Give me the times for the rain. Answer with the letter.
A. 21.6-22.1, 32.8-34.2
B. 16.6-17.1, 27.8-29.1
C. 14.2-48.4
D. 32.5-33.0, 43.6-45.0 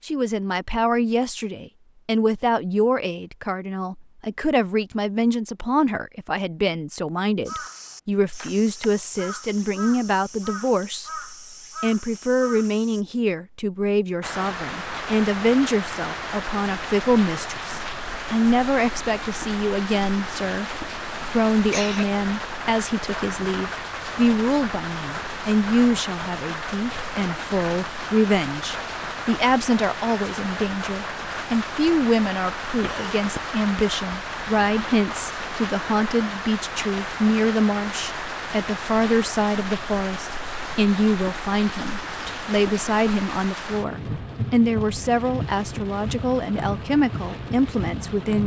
C.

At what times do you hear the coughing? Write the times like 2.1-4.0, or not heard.
21.6-22.1, 32.8-34.2.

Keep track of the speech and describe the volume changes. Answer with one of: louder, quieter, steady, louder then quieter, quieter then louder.
steady.